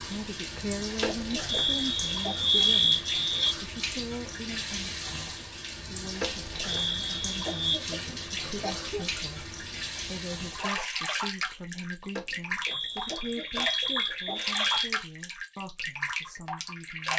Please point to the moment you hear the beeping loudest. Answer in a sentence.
The loudest moment of the beeping is at 3 seconds.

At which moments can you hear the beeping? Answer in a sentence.
You can hear the beeping from 1.0 to 3.5 s, from 6.2 to 7.8 s and from 12.2 to 14.7 s.